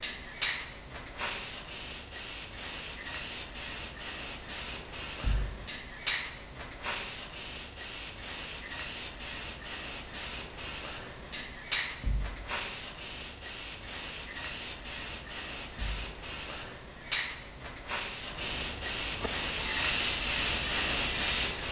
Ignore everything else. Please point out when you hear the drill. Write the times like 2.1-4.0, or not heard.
19.1-21.6.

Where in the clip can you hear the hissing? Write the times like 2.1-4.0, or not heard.
0.0-21.6.